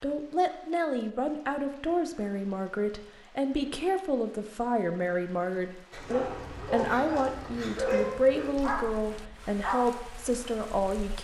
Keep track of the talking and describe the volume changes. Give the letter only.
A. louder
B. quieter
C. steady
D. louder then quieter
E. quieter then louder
C.